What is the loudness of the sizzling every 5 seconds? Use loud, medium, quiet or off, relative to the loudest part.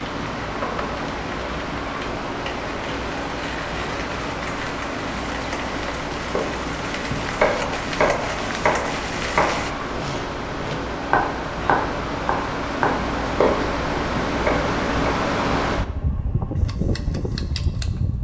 loud, loud, off, off.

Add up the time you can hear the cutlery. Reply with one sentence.
You can't hear the cutlery here.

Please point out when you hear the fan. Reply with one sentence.
The fan can be heard from 0.0 to 18.1 s.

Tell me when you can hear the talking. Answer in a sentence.
The talking can't be heard in this clip.